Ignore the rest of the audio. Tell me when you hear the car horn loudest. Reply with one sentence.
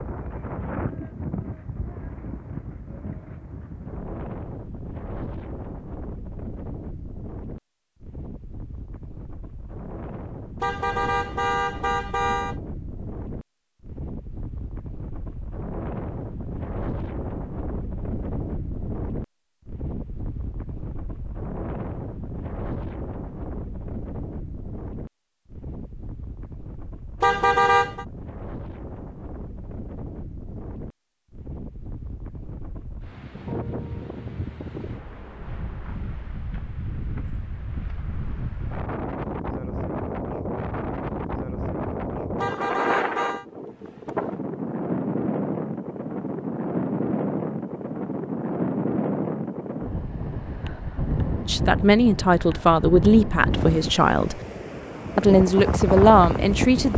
The loudest moment of the car horn is at 28 seconds.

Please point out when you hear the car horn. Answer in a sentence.
The car horn can be heard from 10.6 to 12.6 s, from 27.2 to 28.1 s and from 42.4 to 43.5 s.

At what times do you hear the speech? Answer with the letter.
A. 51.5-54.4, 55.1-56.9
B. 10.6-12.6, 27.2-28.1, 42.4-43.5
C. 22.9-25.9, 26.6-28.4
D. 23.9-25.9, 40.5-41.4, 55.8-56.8
A.